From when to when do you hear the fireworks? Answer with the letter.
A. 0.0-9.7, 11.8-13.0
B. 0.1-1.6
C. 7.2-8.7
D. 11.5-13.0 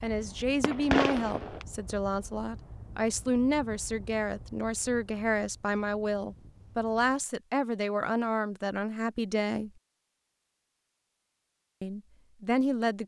B.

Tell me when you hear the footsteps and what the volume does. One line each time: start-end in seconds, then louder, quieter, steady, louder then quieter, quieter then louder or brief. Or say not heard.
not heard.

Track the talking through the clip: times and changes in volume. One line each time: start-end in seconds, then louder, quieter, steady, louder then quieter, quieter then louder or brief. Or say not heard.
0.0-9.7 steady
11.8-13.0 brief.